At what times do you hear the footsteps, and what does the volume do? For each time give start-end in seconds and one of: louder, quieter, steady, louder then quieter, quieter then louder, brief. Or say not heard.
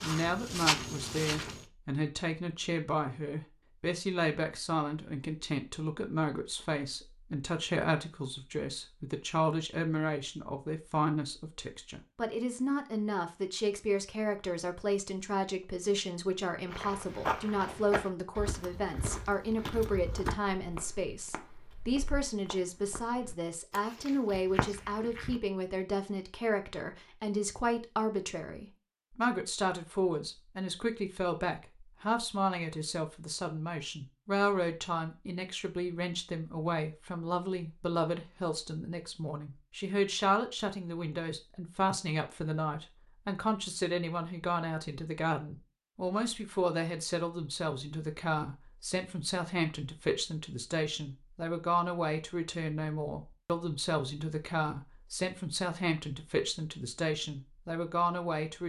0.0-1.6 brief
16.7-25.4 quieter then louder.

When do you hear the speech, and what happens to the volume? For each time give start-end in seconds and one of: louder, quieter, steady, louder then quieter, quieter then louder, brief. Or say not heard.
0.0-58.6 steady.